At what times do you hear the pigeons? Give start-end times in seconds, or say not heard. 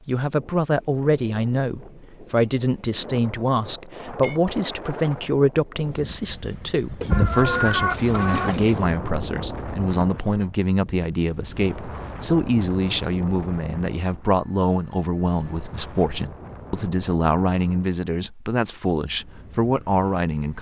7.0-8.9.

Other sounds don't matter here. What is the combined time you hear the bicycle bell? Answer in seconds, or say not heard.
2 s.